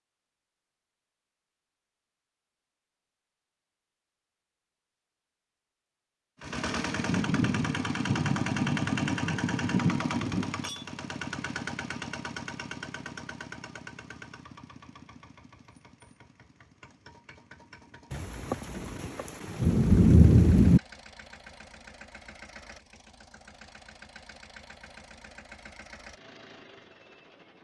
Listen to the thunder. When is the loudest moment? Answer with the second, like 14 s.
20 s.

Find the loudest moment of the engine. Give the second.
9 s.